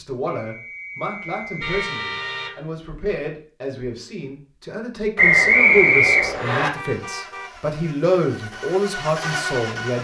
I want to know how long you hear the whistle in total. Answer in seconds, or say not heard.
3 s.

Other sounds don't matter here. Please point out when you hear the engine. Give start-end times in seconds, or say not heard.
6.9-10.0.